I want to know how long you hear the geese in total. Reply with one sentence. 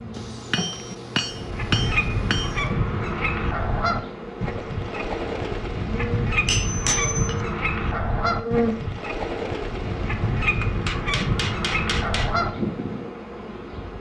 The geese can be heard for 12 seconds in total.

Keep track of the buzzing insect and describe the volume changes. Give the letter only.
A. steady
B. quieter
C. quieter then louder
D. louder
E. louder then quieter
E.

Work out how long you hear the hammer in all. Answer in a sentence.
You can hear the hammer for 5 seconds altogether.